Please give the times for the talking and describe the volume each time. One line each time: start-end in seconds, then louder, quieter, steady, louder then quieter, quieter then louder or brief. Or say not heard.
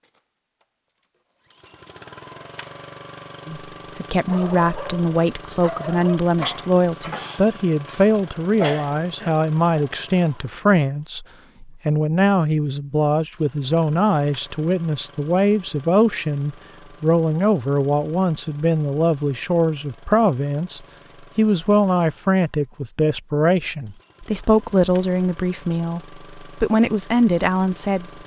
3.5-28.2 steady.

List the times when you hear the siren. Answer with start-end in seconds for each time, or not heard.
not heard.